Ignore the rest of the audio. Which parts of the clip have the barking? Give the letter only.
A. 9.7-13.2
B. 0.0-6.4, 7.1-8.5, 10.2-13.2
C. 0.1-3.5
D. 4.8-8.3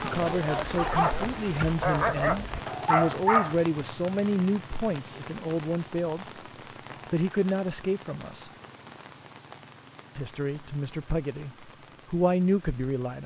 C.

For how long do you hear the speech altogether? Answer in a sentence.
You can hear the speech for 11 seconds altogether.